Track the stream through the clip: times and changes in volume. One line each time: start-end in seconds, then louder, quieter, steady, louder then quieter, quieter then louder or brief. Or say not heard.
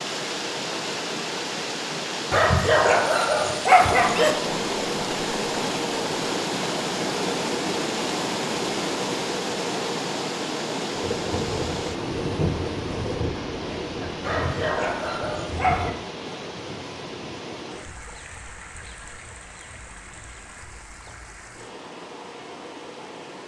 0.0-23.4 quieter.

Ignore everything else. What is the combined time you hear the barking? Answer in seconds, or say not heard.
4 s.